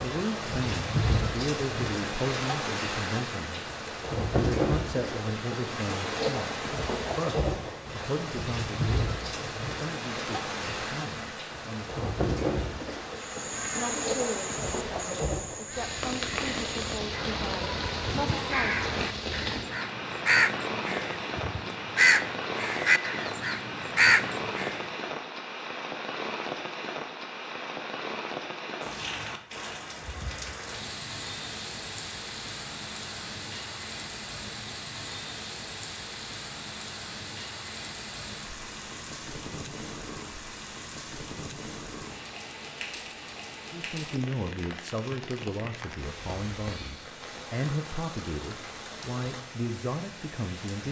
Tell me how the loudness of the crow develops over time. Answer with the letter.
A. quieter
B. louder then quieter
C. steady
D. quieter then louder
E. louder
E.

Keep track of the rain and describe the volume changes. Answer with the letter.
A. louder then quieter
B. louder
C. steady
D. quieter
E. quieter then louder
D.